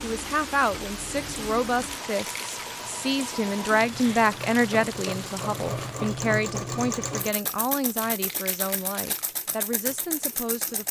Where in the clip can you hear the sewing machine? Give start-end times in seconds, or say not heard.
0.0-10.8.